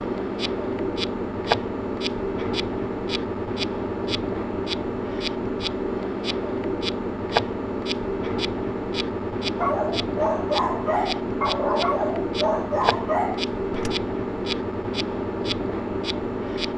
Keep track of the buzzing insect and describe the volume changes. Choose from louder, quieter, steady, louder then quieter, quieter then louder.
steady.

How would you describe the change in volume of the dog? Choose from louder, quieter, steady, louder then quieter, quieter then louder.
steady.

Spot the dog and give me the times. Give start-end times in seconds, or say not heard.
9.6-13.9.